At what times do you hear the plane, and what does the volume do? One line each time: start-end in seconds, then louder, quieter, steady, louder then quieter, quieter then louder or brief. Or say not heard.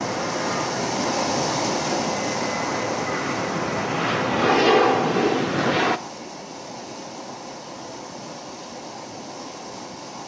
0.0-6.0 louder.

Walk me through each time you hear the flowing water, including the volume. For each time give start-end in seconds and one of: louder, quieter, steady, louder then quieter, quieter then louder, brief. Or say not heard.
0.0-10.2 quieter.